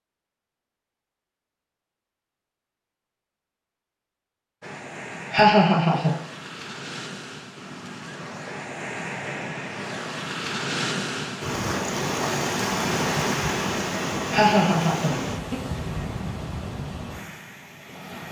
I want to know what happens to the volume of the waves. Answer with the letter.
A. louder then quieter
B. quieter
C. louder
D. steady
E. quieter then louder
A.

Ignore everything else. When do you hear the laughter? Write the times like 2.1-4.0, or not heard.
5.3-6.2, 14.3-15.6.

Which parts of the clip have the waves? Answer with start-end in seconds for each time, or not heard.
4.6-18.2.